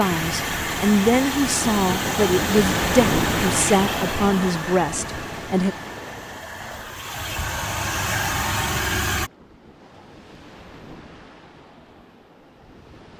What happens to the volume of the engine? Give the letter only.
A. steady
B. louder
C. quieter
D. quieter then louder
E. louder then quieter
D.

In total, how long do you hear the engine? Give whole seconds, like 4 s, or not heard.
9 s.